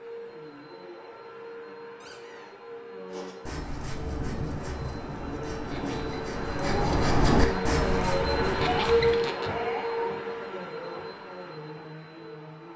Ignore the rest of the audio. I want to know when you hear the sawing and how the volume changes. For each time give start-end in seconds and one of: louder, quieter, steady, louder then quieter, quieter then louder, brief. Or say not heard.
3.0-9.2 louder then quieter.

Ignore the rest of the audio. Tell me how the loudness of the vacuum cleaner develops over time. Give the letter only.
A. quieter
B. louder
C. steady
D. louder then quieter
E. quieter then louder
D.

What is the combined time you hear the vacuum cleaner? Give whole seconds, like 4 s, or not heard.
13 s.